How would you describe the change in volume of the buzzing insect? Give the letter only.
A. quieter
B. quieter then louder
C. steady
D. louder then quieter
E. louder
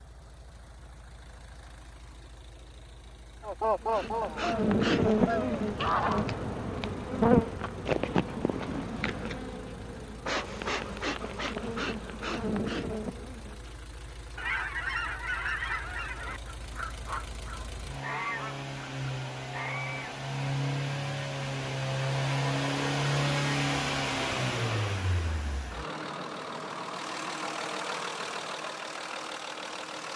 A.